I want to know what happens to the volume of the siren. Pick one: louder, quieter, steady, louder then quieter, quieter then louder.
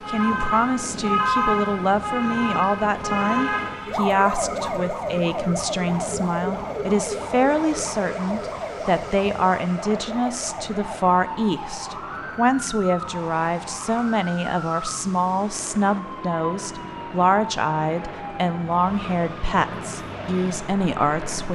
quieter.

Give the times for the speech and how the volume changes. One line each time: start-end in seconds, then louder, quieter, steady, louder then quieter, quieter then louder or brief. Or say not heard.
0.1-21.4 steady.